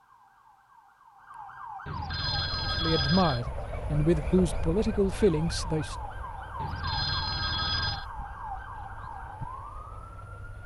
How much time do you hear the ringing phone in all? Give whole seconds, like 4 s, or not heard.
3 s.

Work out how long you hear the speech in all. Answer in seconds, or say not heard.
3 s.